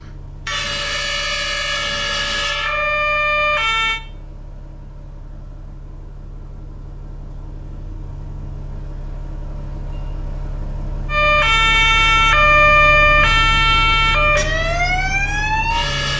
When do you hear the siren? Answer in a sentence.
You can hear the siren from 0.0 to 4.0 s and from 11.1 to 16.1 s.